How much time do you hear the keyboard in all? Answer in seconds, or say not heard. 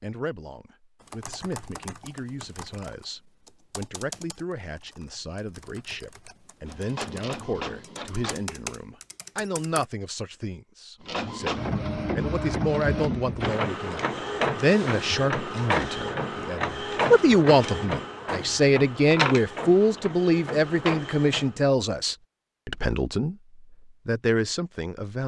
9 s.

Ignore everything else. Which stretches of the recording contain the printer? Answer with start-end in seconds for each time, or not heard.
6.7-8.4, 11.1-21.6.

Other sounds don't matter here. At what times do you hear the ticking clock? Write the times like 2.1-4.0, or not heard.
not heard.